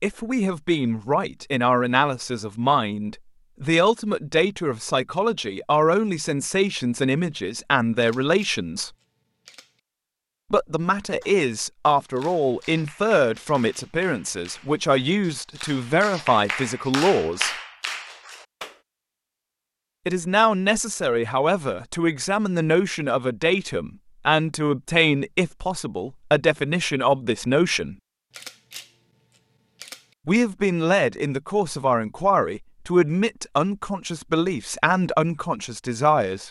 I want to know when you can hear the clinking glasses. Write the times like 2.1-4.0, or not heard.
not heard.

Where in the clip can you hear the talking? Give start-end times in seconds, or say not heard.
0.0-8.9, 10.5-17.6, 20.1-27.9, 30.2-36.4.